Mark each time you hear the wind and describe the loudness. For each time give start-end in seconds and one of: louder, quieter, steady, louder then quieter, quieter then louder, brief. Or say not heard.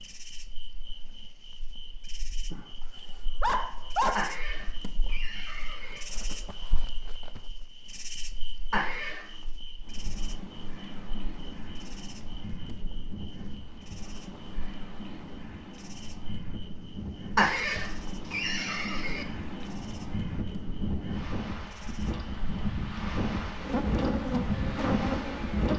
9.8-25.7 louder.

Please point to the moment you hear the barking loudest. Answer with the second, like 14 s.
4 s.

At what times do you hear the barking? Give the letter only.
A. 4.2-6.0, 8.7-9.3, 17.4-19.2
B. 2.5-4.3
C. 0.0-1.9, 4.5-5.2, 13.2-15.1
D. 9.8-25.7
B.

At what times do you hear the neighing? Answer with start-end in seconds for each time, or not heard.
4.2-6.0, 8.7-9.3, 17.4-19.2.